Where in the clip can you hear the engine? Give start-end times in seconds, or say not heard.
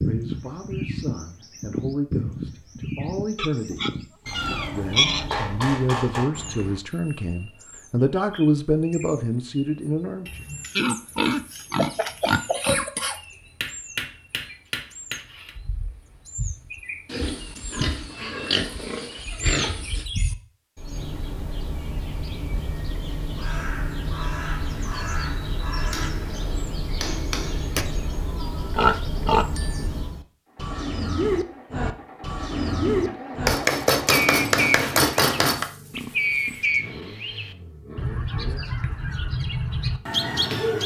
30.4-40.6.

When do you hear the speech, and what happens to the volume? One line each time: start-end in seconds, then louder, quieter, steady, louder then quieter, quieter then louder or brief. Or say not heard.
0.0-10.4 louder.